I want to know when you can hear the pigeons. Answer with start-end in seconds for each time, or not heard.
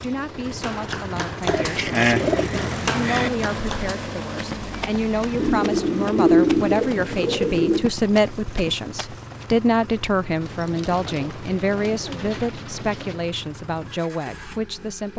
1.4-3.3, 5.3-7.9, 10.4-13.2.